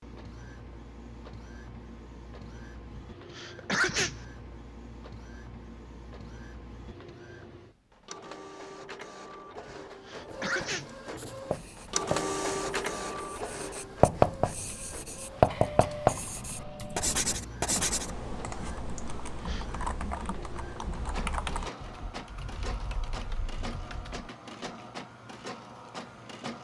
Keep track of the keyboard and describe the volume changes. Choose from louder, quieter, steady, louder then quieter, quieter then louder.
louder then quieter.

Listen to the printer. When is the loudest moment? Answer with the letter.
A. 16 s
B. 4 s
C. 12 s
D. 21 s
C.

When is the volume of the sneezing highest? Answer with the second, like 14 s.
4 s.